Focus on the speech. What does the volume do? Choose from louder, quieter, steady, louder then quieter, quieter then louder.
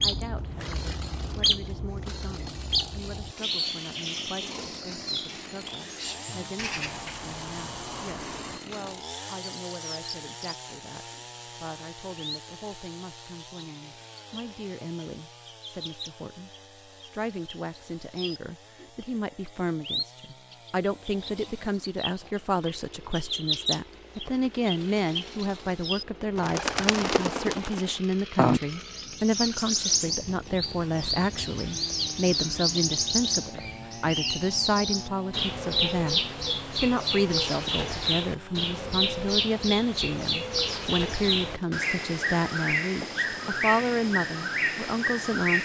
louder.